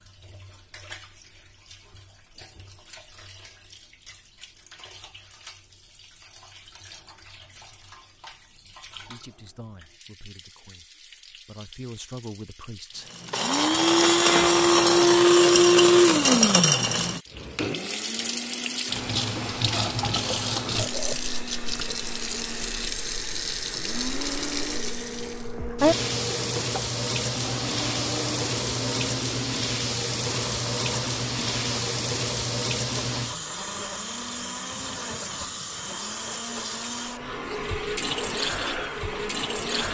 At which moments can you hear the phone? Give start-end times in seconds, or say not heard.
not heard.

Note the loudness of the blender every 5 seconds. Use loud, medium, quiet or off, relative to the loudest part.
off, off, loud, loud, quiet, quiet, quiet, quiet.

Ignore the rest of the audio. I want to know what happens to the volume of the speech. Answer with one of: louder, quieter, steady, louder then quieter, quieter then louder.
quieter then louder.